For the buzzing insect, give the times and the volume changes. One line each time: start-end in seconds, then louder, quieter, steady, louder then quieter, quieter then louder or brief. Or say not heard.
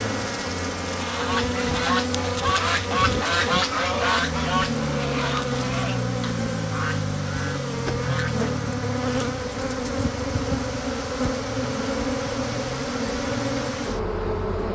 0.0-14.6 steady.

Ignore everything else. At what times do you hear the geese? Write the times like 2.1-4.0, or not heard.
0.9-8.4.